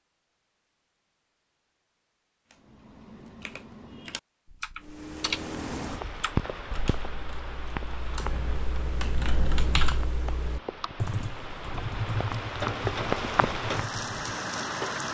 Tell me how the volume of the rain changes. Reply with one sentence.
The loudness of the rain goes down, then up.